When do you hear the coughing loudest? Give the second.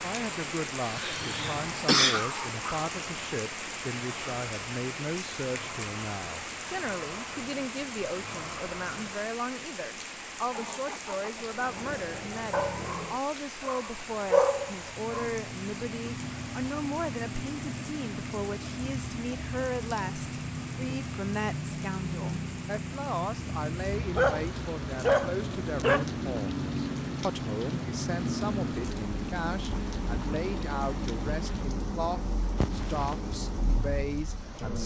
2 s.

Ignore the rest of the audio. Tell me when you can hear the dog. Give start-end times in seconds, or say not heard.
1.1-2.6, 12.5-12.9, 13.7-15.3, 24.1-26.1.